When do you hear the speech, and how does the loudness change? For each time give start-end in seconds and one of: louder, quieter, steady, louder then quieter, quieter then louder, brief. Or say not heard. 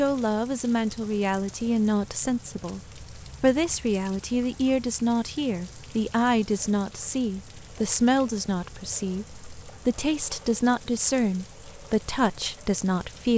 0.0-13.3 steady.